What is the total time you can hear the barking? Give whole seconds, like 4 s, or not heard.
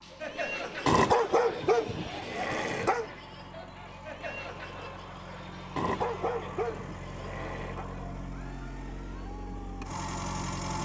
4 s.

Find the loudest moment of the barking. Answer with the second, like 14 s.
1 s.